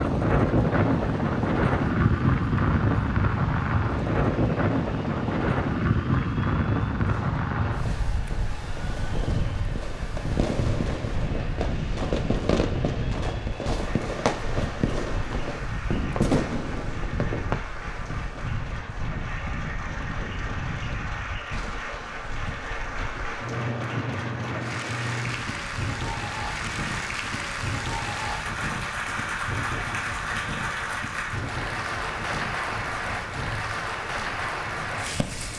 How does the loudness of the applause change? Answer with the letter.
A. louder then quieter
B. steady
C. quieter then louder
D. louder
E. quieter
D.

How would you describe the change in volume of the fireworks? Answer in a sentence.
The volume of the fireworks goes up.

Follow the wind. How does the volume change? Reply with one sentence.
The volume of the wind goes down.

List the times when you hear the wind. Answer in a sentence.
You can hear the wind from 0.0 to 35.5 s.